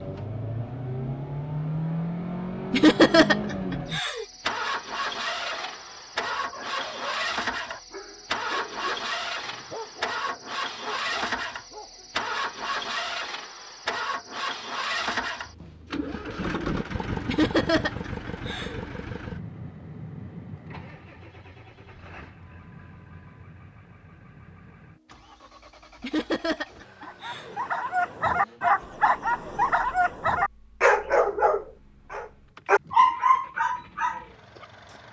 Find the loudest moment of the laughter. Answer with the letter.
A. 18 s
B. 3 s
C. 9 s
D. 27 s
B.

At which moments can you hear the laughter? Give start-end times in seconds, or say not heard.
2.7-4.2, 17.2-18.8, 26.0-27.6.